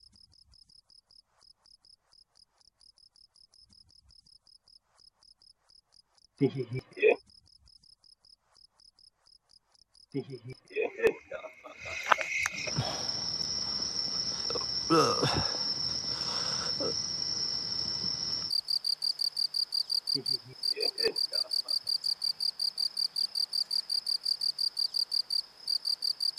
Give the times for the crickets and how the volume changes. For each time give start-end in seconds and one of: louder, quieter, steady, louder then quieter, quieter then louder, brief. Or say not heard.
0.0-26.3 louder.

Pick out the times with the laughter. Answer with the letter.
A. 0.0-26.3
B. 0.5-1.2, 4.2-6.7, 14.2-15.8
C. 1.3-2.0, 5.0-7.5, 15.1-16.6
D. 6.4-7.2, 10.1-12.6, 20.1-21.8
D.